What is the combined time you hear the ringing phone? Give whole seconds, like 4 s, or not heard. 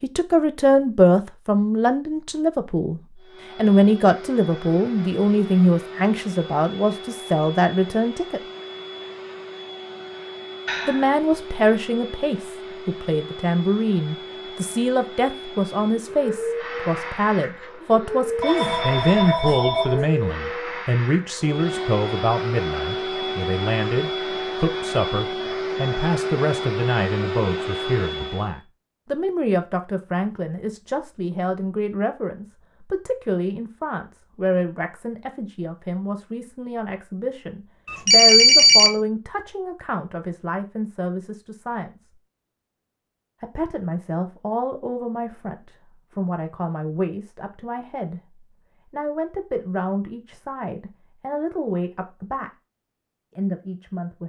3 s.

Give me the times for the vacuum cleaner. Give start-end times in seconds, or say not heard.
3.2-28.6.